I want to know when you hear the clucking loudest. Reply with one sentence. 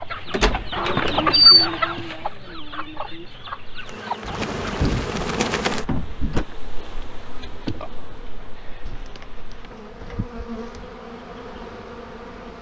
The volume of the clucking peaks at 1 second.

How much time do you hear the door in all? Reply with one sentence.
You can hear the door for 6 seconds altogether.